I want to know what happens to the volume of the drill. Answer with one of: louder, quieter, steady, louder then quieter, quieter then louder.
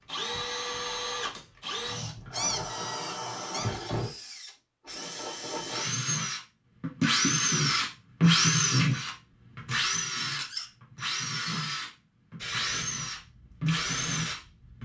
louder then quieter.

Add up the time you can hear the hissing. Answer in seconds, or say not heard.
2 s.